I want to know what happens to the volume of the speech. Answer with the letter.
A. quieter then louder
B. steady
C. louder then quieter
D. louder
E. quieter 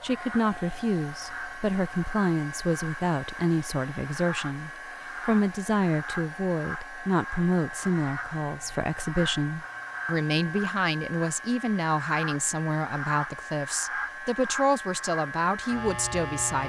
B.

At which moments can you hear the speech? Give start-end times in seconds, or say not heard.
0.0-16.6.